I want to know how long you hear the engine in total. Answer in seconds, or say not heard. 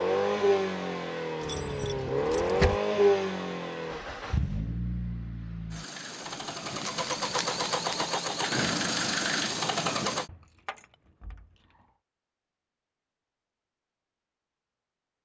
10 s.